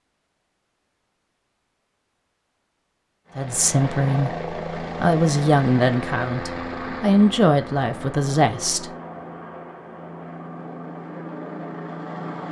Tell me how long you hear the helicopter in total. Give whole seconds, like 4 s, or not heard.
9 s.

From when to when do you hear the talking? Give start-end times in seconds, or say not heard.
3.4-8.9.